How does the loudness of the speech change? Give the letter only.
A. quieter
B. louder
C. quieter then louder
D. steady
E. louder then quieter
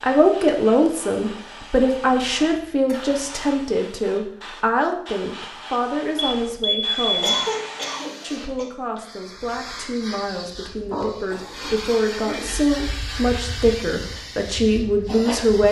C.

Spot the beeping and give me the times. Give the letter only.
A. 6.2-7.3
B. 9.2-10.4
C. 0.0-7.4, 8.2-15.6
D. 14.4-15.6
A.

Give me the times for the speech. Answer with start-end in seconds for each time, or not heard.
0.0-7.4, 8.2-15.6.